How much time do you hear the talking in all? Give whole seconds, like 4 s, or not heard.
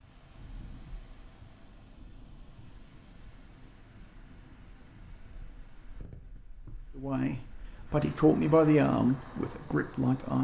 3 s.